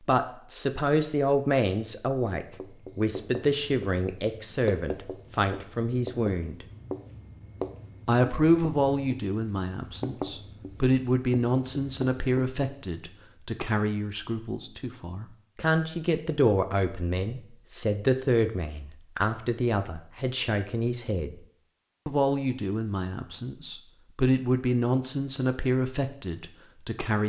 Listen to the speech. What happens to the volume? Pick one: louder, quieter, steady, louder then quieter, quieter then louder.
steady.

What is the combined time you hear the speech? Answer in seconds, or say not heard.
25 s.